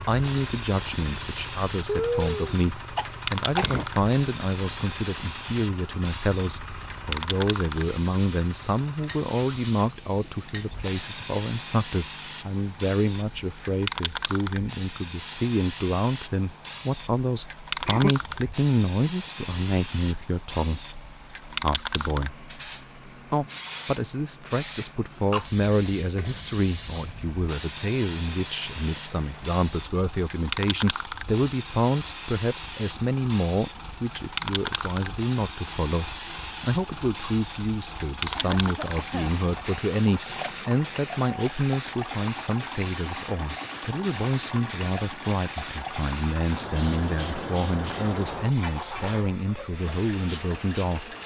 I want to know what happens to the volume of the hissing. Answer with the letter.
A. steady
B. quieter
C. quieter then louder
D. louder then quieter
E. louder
A.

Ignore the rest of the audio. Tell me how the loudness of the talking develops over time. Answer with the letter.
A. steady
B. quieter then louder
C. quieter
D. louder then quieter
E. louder
A.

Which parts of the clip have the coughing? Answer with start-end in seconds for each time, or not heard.
1.9-3.9, 17.9-18.4, 38.3-39.4.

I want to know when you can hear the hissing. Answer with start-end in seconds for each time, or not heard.
0.1-51.2.